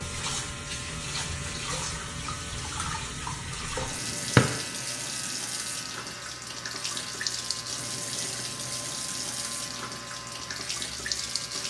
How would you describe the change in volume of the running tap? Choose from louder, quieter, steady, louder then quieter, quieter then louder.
steady.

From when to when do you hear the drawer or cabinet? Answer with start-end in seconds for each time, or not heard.
3.8-4.5.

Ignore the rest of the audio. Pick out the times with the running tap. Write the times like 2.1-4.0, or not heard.
0.0-11.6.